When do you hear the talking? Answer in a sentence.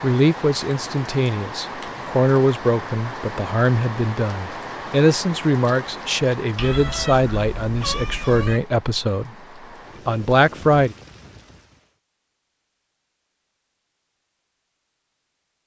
The talking can be heard from 0.0 to 9.3 s and from 10.1 to 10.9 s.